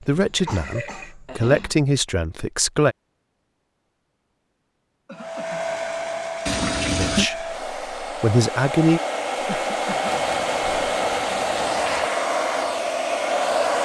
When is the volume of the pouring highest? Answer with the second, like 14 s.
7 s.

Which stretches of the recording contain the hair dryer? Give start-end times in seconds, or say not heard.
5.2-13.7.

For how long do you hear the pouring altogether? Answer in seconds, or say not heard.
4 s.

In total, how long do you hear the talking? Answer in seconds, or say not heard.
5 s.